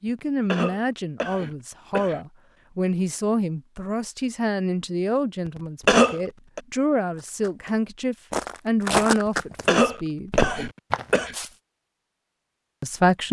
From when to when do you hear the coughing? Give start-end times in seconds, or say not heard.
0.5-2.2, 5.8-6.6, 9.7-11.3.